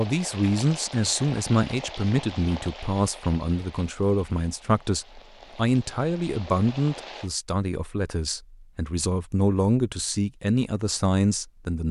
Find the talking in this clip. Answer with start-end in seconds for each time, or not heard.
0.0-11.8.